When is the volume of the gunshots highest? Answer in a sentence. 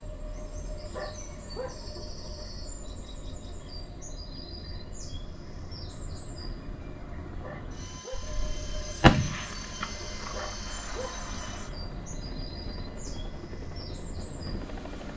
The volume of the gunshots peaks at 9 seconds.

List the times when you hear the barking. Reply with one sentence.
The barking can be heard from 0.9 to 1.8 s, from 7.4 to 8.2 s and from 10.3 to 11.2 s.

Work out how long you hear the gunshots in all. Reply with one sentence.
The gunshots can be heard for 4 seconds in total.